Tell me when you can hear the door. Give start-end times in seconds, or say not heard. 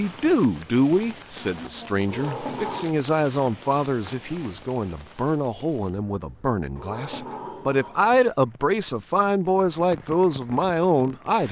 2.0-2.9, 6.8-8.2.